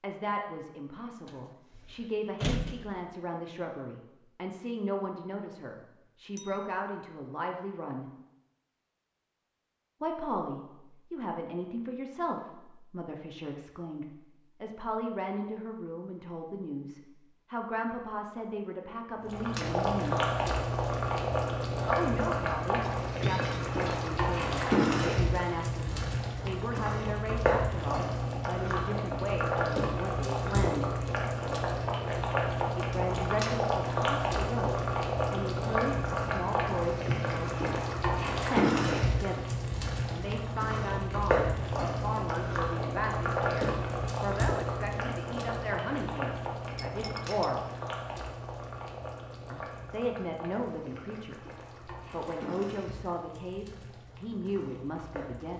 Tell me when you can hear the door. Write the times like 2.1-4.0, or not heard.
1.2-3.0.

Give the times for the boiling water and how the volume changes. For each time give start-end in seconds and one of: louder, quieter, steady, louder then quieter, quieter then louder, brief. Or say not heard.
19.2-55.5 quieter.